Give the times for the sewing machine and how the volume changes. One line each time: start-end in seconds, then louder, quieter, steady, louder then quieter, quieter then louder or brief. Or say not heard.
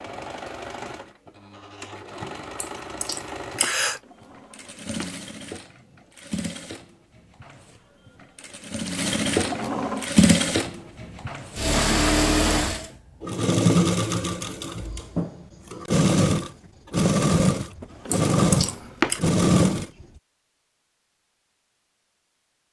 0.0-20.1 louder.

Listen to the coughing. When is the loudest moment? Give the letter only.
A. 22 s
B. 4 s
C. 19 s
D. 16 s
B.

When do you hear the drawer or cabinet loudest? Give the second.
19 s.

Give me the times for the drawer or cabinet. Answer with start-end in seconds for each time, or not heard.
4.0-5.1, 9.3-10.1, 18.1-19.1.